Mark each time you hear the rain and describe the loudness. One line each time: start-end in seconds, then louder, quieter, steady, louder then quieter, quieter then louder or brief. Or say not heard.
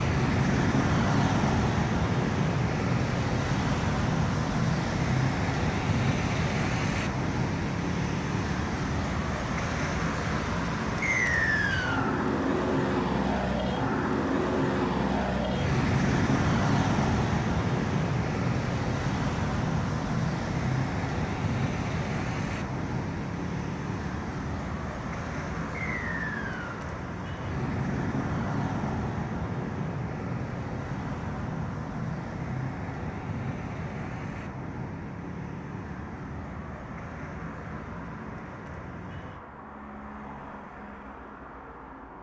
not heard.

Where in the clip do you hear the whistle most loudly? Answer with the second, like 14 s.
11 s.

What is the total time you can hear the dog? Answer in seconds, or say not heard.
not heard.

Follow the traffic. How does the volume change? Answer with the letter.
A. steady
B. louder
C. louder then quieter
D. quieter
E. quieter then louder
D.